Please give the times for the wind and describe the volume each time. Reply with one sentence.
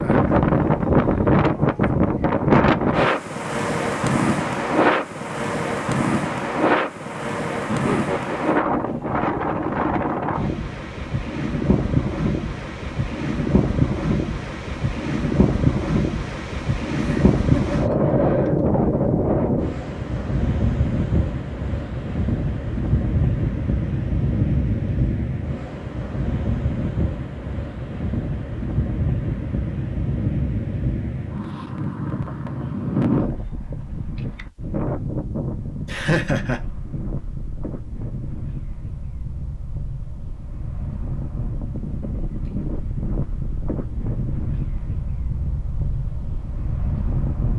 You can hear the wind from 0.0 to 47.5 s, getting quieter.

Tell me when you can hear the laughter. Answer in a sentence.
You can hear the laughter from 7.7 to 8.6 s, from 17.0 to 18.1 s and from 35.9 to 36.6 s.